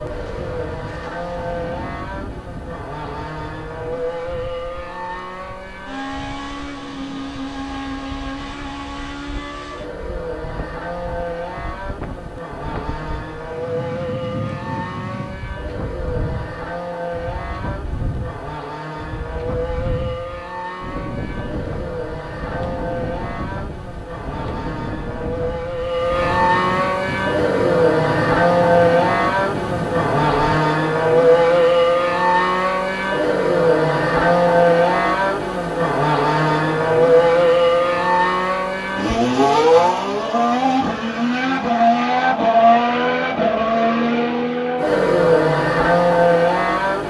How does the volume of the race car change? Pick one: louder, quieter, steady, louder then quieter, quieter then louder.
louder.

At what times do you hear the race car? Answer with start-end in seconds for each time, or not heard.
0.0-47.0.